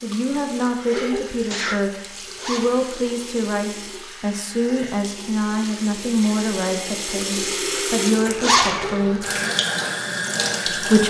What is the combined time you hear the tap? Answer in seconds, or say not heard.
11 s.